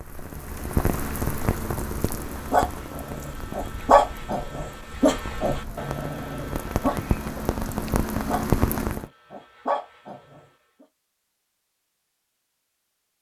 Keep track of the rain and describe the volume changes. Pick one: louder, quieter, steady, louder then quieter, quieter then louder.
quieter then louder.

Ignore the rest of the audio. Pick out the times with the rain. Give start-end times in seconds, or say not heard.
0.0-9.1.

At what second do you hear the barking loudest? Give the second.
4 s.